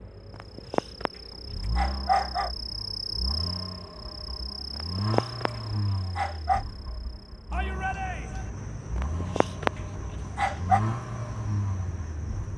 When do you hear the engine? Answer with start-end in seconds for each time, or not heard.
0.0-12.5.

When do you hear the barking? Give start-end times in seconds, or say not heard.
0.3-1.1, 1.8-2.5, 4.7-5.5, 6.2-6.7, 8.9-9.7, 10.3-10.8.